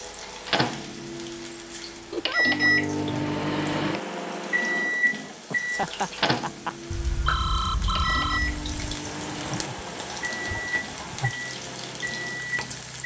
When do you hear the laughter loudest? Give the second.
6 s.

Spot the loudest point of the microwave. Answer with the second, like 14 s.
3 s.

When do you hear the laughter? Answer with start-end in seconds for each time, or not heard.
2.1-2.6, 5.5-6.8, 9.1-11.3.